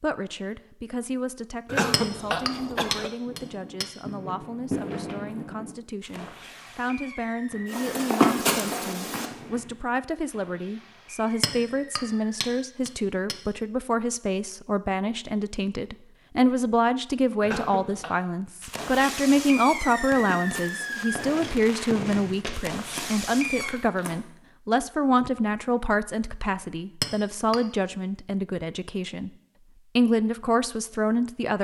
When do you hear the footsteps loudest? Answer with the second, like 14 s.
8 s.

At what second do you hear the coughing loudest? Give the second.
2 s.